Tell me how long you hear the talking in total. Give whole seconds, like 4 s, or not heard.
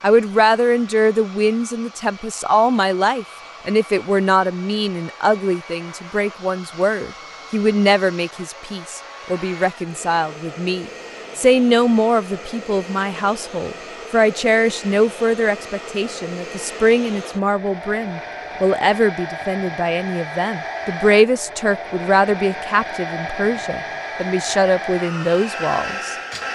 26 s.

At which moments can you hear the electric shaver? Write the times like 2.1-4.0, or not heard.
not heard.